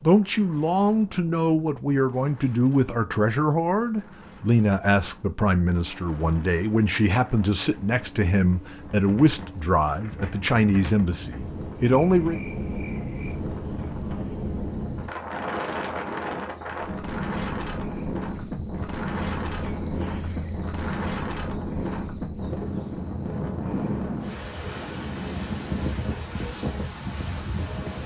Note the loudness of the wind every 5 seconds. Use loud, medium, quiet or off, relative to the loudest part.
quiet, quiet, loud, loud, loud, loud.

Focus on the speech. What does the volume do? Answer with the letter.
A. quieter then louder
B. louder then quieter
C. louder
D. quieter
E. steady
E.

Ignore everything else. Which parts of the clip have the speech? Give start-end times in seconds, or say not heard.
0.0-12.4.